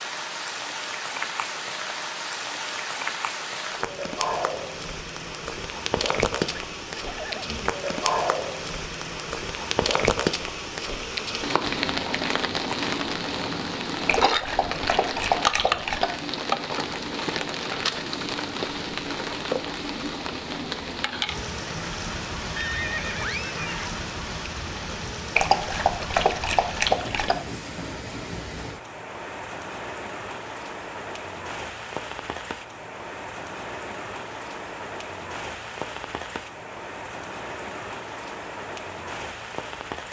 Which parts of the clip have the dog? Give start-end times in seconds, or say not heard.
14.1-16.1, 25.4-27.4.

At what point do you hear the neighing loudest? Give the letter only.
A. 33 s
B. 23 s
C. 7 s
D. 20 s
B.